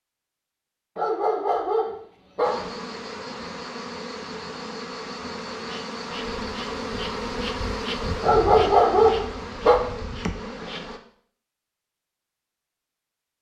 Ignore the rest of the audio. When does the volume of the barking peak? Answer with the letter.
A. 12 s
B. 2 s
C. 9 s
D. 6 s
C.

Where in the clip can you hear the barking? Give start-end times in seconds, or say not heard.
0.9-2.7, 8.2-9.8.